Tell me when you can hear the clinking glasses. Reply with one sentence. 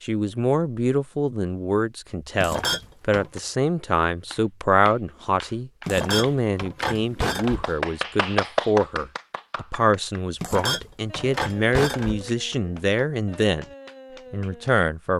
The clinking glasses can be heard from 2.4 to 3.4 s, from 5.8 to 7.7 s and from 10.4 to 12.2 s.